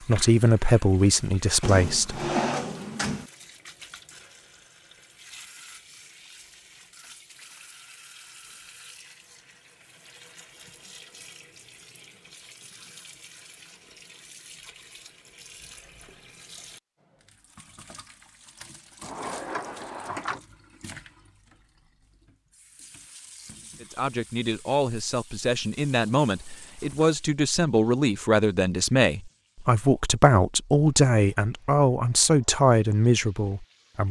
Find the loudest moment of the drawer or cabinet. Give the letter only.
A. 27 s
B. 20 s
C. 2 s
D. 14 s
C.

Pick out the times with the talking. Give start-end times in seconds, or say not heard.
0.1-2.2, 23.8-34.0.